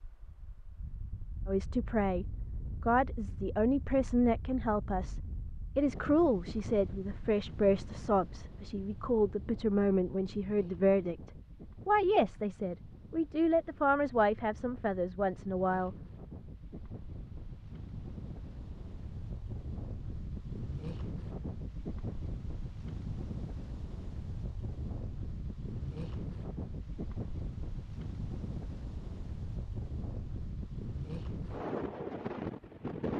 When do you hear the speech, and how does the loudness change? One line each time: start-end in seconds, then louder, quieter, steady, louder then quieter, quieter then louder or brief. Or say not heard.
1.4-15.9 steady.